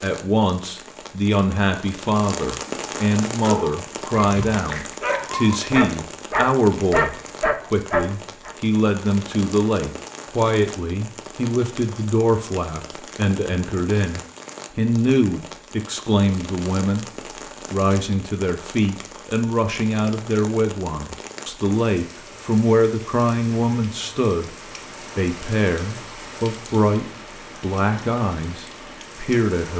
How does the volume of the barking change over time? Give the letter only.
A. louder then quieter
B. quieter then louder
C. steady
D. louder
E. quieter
D.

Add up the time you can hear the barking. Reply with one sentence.
You can hear the barking for 5 seconds altogether.